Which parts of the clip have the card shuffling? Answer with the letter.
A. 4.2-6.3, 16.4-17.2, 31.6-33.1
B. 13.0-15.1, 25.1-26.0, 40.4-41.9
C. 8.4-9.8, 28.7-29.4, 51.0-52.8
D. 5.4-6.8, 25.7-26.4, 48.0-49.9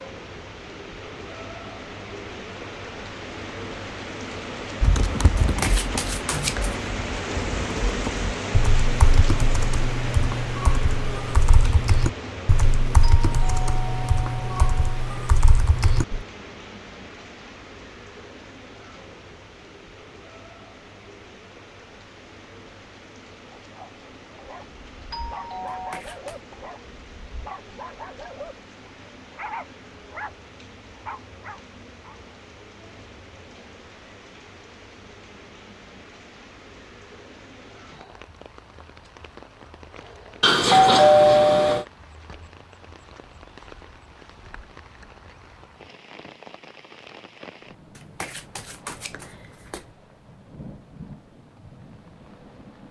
D.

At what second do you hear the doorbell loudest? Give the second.
41 s.